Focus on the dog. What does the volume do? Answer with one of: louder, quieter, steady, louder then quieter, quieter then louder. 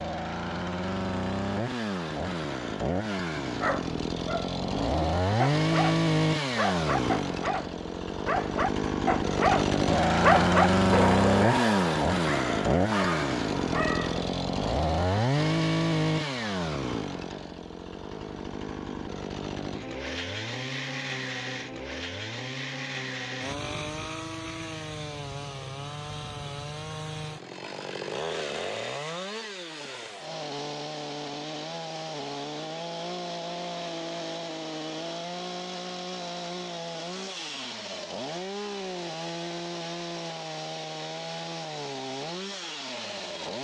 louder then quieter.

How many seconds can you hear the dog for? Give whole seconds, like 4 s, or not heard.
11 s.